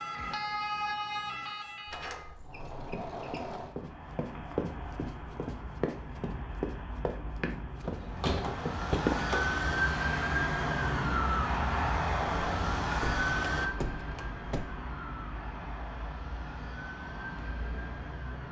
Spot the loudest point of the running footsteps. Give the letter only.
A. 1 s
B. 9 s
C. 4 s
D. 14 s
B.